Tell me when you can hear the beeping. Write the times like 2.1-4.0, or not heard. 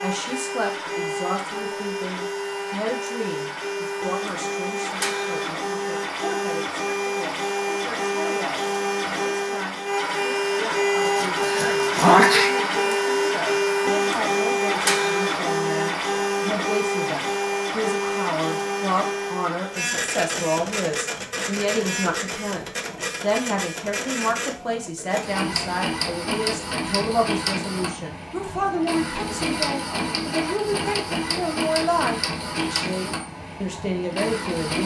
not heard.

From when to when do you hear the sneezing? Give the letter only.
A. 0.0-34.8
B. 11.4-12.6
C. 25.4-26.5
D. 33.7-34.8
B.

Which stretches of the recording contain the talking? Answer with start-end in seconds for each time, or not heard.
0.0-34.8.